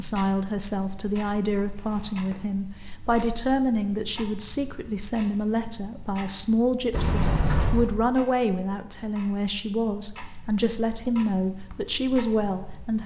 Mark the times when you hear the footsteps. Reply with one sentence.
You can't hear the footsteps here.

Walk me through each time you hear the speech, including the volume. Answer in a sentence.
The speech can be heard from 0.0 to 13.0 s, at a steady volume.